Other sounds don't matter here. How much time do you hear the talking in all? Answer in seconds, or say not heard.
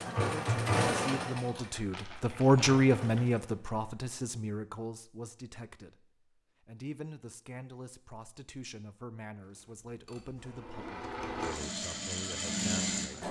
13 s.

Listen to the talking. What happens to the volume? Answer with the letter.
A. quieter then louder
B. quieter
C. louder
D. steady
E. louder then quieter
B.